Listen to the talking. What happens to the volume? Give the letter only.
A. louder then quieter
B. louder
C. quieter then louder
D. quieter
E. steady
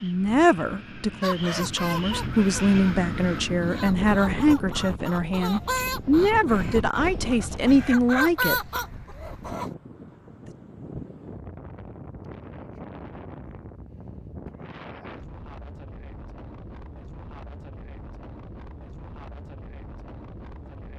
E.